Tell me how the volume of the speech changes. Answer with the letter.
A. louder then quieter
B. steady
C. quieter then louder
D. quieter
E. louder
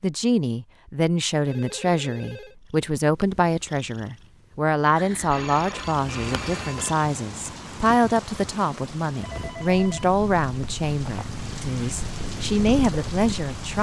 B.